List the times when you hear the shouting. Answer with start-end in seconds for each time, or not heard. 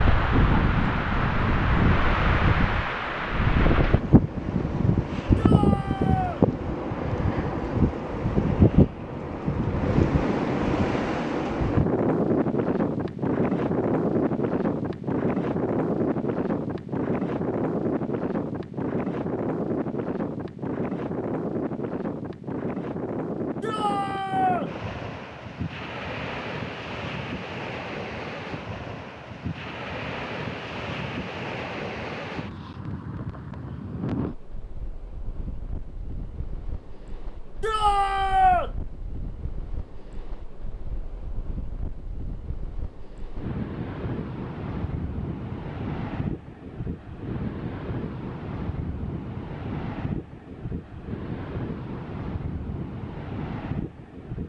5.3-6.4, 23.6-24.7, 37.6-38.7.